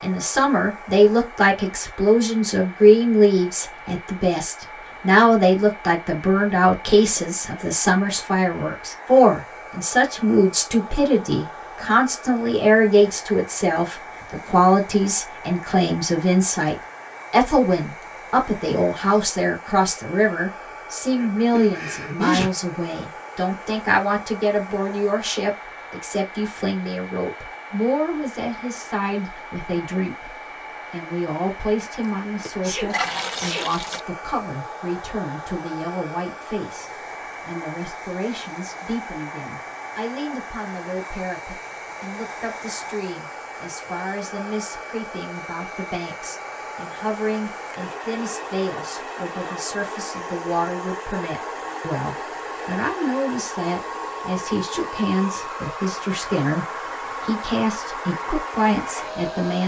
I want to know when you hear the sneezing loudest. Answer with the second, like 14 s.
22 s.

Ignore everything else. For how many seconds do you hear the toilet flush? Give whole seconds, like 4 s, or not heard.
2 s.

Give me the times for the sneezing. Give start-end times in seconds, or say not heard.
21.1-22.5, 32.6-33.6.